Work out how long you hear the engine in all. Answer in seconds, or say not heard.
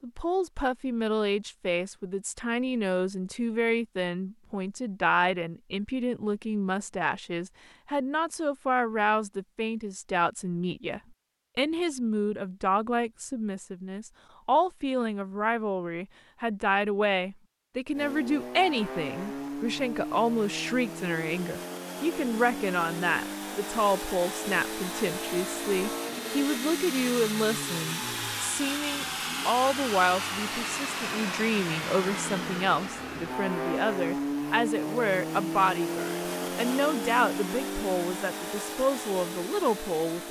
22 s.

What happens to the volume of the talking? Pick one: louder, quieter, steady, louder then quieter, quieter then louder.
steady.